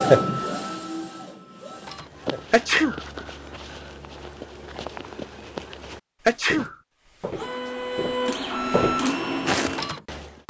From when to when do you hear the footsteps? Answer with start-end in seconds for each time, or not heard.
1.8-10.3.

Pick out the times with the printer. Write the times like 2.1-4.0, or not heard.
0.0-2.5, 7.3-10.4.